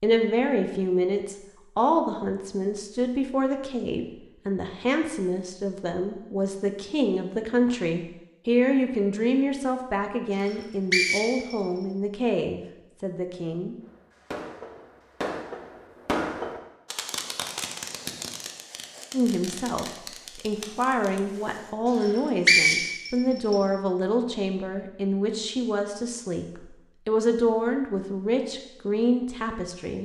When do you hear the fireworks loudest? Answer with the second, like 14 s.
16 s.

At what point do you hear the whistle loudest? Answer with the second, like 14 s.
23 s.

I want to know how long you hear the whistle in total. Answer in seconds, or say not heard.
3 s.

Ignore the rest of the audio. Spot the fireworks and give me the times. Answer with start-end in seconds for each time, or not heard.
13.8-21.8.